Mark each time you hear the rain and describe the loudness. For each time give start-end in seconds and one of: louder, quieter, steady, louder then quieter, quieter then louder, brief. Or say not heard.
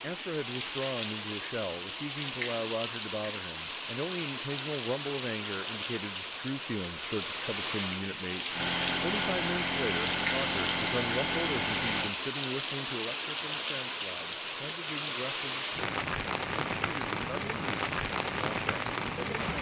0.0-19.5 steady.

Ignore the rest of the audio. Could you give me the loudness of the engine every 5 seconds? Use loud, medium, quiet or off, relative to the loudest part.
off, loud, loud, off.